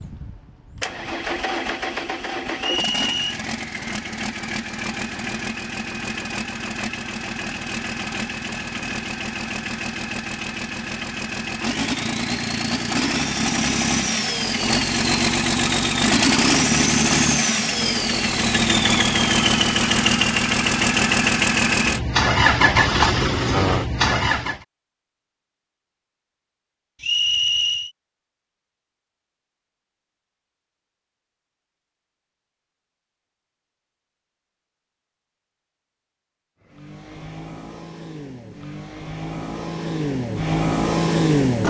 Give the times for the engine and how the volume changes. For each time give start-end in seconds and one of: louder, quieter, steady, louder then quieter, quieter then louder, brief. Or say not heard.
0.0-24.6 louder
36.6-41.6 louder.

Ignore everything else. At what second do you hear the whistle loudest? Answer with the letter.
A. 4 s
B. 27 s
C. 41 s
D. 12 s
B.